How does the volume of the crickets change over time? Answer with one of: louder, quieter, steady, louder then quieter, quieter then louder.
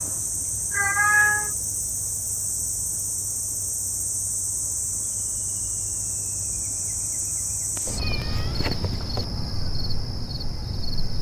steady.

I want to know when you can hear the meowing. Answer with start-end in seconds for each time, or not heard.
0.7-1.5, 7.8-9.2.